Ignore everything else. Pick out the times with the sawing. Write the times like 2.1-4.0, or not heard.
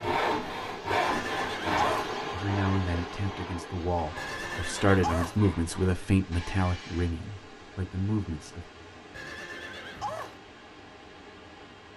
0.0-7.2.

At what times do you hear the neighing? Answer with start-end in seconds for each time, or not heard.
0.9-2.1, 4.2-5.4, 9.1-10.4.